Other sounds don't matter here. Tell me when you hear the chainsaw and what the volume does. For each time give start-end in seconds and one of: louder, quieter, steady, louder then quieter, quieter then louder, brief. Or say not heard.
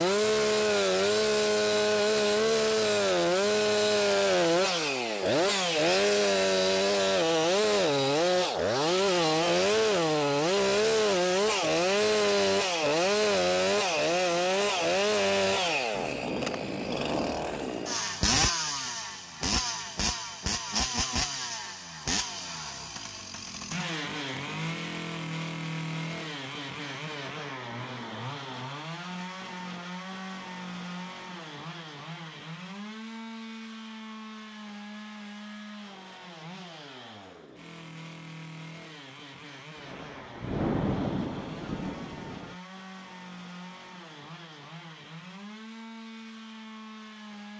0.0-47.5 quieter.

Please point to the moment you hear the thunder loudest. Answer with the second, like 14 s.
41 s.